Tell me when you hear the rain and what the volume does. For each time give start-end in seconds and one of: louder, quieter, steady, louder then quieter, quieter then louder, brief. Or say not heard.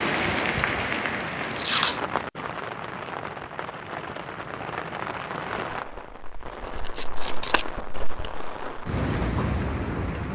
0.0-10.2 quieter then louder.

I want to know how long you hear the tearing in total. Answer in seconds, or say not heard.
4 s.